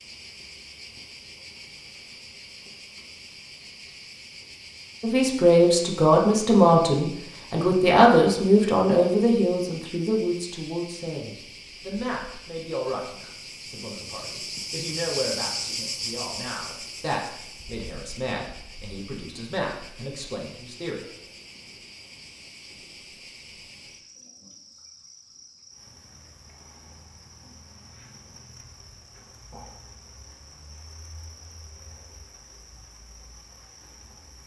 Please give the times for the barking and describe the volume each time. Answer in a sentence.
The barking can't be heard in this clip.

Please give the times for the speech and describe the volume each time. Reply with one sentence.
The speech can be heard from 5.0 to 21.1 s, getting quieter.